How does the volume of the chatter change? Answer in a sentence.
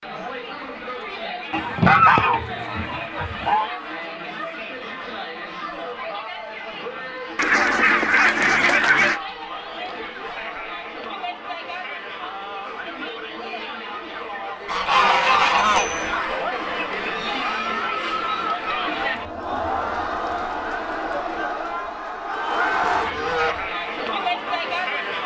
The loudness of the chatter goes up.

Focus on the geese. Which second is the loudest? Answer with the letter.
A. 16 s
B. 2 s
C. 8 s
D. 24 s
B.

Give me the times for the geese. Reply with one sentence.
The geese can be heard from 1.5 to 3.7 s, from 7.3 to 9.2 s, from 14.7 to 16.1 s and from 22.9 to 23.7 s.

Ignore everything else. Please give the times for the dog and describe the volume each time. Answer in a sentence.
You can't hear the dog here.